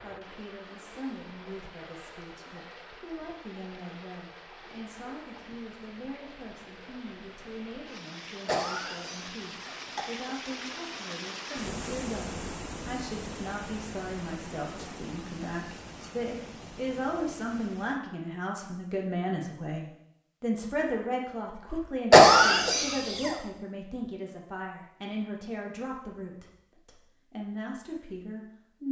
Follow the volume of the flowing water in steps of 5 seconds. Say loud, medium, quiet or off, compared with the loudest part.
medium, medium, loud, medium, off, off.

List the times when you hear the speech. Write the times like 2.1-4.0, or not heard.
0.0-28.8.